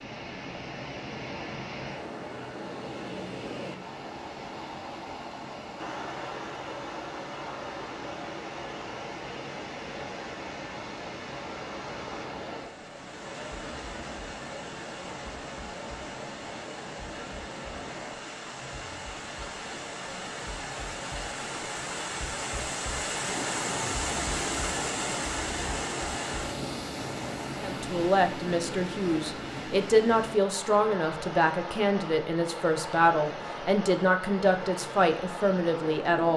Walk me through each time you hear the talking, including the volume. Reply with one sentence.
The talking can be heard from 27.6 to 36.3 s, at a steady volume.